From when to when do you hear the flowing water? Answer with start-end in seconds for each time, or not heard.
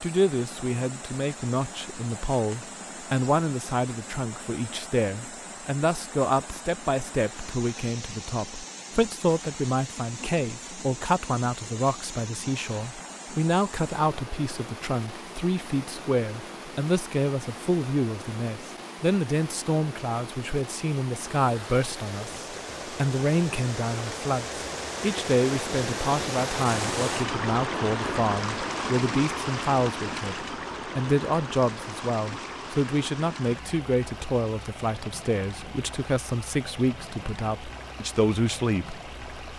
0.0-39.5.